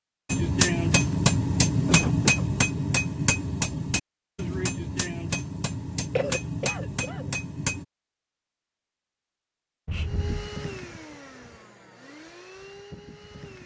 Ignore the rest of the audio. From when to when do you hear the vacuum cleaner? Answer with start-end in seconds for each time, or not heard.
10.0-13.6.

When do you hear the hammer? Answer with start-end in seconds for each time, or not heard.
0.2-7.8.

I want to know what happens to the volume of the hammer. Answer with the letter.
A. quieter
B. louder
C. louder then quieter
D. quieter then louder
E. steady
A.